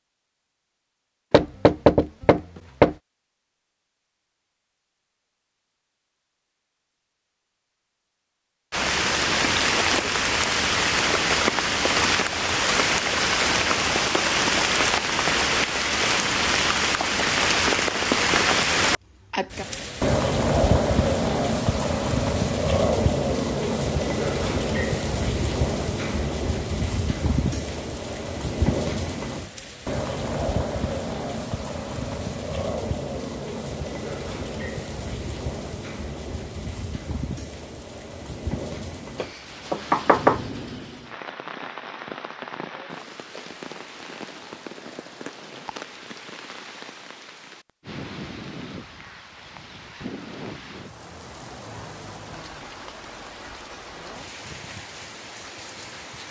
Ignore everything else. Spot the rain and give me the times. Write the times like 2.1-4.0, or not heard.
8.7-56.2.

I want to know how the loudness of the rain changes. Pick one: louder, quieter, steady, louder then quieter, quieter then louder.
quieter.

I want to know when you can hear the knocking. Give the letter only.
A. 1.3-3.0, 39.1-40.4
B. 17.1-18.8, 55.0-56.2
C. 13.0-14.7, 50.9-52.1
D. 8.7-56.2
A.